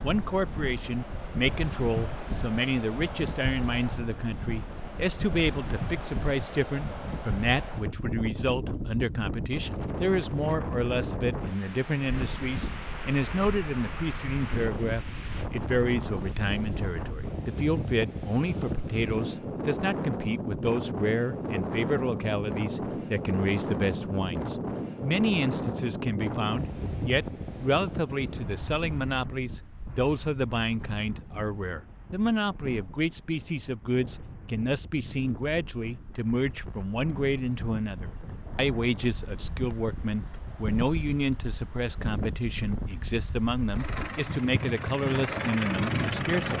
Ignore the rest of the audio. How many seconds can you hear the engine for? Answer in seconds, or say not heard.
3 s.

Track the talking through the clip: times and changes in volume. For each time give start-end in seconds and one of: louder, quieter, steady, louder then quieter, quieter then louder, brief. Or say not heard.
0.0-46.5 steady.